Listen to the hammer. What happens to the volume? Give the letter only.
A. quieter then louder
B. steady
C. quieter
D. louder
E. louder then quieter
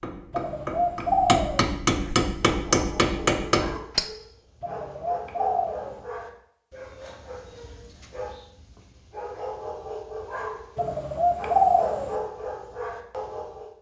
D.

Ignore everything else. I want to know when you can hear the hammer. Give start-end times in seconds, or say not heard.
0.0-4.0.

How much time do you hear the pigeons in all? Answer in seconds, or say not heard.
4 s.